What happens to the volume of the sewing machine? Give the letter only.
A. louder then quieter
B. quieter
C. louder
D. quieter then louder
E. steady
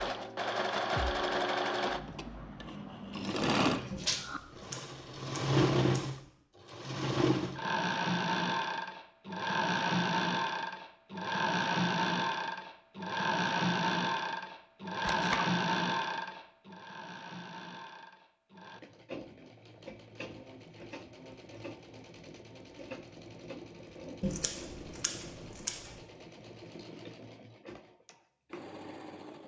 B.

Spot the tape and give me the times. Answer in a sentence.
The tape can be heard from 15.0 to 15.4 s.